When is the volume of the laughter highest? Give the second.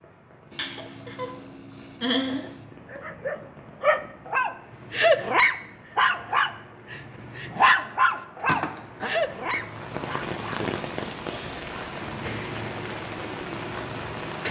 2 s.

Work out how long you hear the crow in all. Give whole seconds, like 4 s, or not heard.
not heard.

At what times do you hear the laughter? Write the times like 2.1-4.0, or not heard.
0.5-2.6, 8.4-9.2.